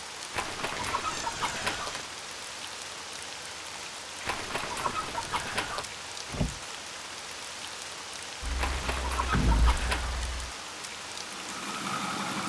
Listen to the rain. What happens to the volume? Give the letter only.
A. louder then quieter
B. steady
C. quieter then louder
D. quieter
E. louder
B.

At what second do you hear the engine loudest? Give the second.
12 s.